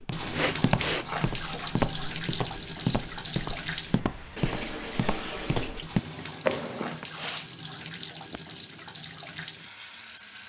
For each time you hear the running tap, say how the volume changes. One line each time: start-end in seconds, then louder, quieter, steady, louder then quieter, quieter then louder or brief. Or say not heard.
0.0-10.4 quieter.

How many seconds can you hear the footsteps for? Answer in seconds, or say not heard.
7 s.